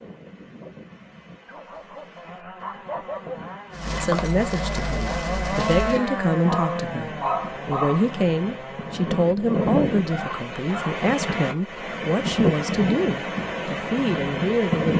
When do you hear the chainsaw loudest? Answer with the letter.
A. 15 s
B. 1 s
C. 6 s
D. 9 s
C.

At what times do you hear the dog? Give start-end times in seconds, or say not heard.
1.4-3.5, 6.5-8.1, 10.1-11.9.